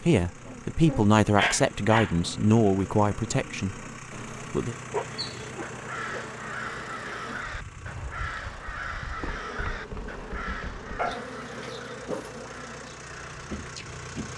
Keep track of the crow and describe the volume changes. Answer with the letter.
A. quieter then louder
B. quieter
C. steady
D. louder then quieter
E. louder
B.